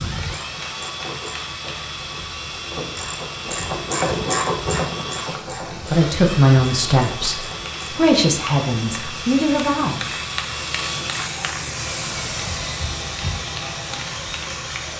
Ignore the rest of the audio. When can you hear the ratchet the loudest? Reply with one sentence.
The volume of the ratchet peaks at 4 seconds.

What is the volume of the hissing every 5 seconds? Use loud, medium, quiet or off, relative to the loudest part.
medium, medium, loud.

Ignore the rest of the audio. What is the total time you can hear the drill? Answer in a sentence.
The drill can be heard for 15 seconds in total.